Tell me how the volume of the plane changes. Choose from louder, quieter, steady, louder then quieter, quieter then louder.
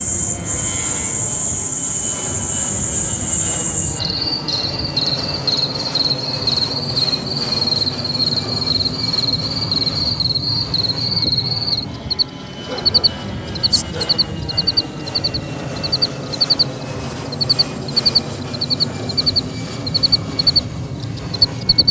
steady.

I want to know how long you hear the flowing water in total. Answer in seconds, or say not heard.
not heard.